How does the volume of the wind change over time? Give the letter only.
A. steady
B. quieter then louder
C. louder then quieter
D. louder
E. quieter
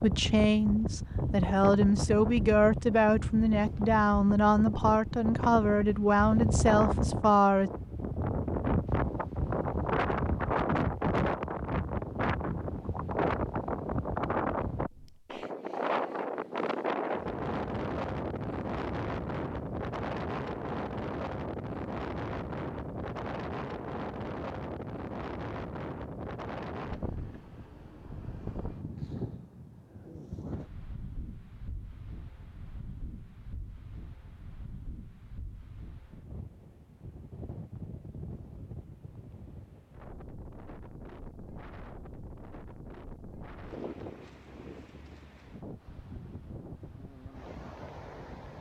E.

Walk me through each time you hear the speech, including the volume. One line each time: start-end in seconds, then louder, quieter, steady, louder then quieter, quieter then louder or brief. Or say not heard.
0.0-7.7 steady.